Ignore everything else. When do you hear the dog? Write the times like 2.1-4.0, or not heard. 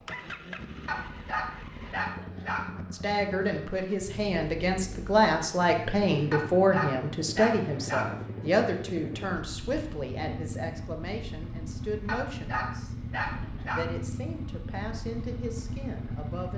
0.8-2.7, 6.3-8.2, 12.1-13.8.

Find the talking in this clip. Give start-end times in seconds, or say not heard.
2.9-12.9, 13.7-16.5.